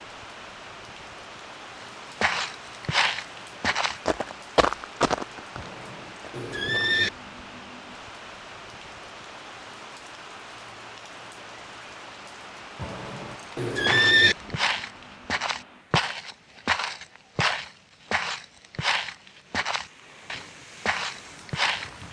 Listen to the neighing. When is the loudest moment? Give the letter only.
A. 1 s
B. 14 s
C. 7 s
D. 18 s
B.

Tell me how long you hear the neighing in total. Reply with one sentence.
The neighing can be heard for 3 seconds in total.